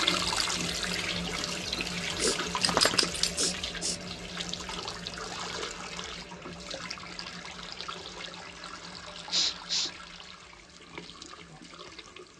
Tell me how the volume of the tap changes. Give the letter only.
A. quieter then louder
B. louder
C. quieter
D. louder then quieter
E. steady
C.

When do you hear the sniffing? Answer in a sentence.
You can hear the sniffing from 1.6 to 4.0 s and from 9.3 to 9.9 s.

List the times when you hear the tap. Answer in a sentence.
You can hear the tap from 0.0 to 12.3 s.